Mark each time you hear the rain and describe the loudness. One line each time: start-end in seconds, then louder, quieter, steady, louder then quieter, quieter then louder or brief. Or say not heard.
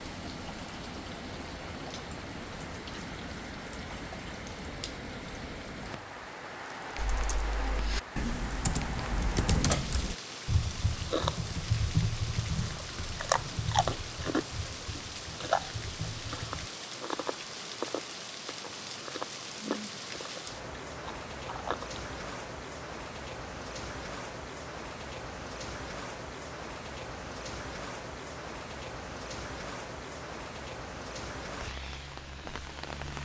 0.0-33.2 steady.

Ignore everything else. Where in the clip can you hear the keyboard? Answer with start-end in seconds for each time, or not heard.
7.0-16.7.